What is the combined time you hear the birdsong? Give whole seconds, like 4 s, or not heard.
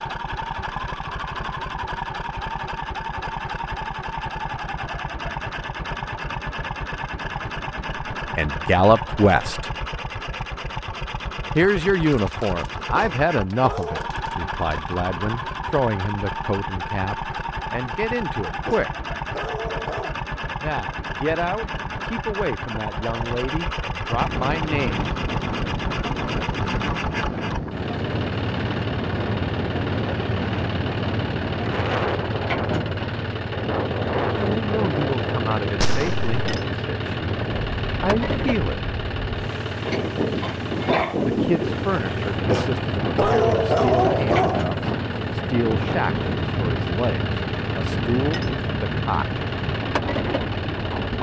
not heard.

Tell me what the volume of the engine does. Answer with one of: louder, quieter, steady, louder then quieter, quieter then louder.
steady.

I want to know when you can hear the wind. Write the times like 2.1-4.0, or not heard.
24.1-51.1.